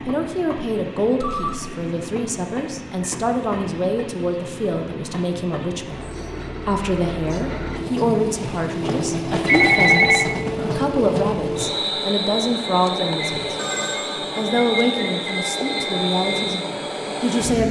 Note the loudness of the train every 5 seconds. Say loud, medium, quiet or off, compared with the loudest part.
medium, loud, loud, loud.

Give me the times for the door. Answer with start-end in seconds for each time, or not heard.
not heard.